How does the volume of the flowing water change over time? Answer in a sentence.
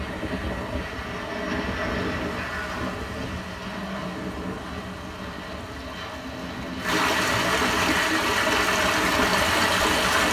The volume of the flowing water goes up.